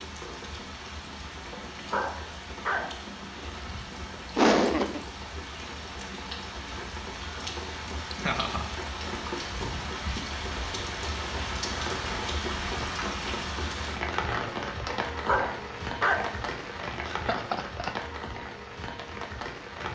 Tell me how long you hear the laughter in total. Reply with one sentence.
You can hear the laughter for 2 seconds altogether.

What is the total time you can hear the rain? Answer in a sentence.
You can hear the rain for 20 seconds altogether.